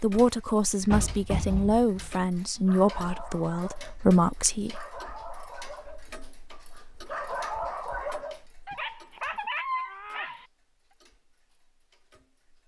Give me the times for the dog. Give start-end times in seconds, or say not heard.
2.3-10.4.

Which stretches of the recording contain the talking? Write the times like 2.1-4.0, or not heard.
0.0-4.8.